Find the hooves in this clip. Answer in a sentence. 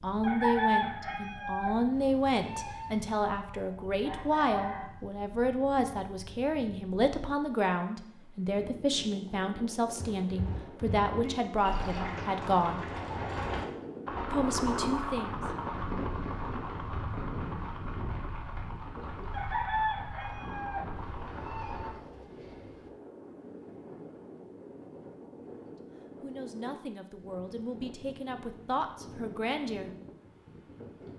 The hooves can be heard from 9.9 to 21.9 s.